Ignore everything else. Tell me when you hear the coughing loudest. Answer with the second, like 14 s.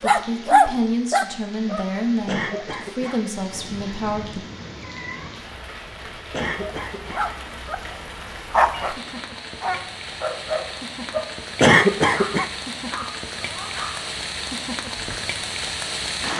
12 s.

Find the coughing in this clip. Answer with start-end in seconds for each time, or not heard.
2.2-3.2, 6.3-7.3, 11.6-12.5.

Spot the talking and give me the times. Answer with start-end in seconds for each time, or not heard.
0.0-4.4.